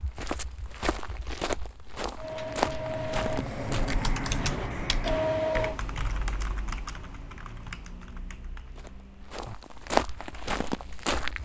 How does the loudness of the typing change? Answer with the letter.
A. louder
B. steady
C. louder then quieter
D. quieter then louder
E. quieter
E.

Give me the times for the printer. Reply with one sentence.
The printer can be heard from 2.1 to 5.8 s.